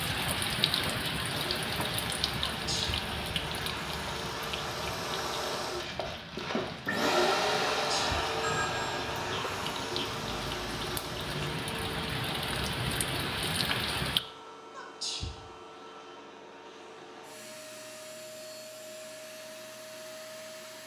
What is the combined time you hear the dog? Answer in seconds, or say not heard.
not heard.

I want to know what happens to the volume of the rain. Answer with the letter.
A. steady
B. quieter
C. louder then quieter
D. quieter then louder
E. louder
D.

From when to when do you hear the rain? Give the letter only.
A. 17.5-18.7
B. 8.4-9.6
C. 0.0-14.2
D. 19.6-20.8
C.